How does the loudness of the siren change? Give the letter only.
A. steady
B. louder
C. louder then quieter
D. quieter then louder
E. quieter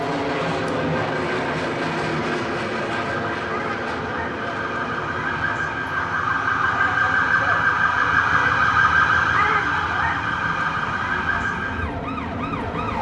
C.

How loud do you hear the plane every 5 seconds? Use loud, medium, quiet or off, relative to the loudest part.
loud, medium, medium.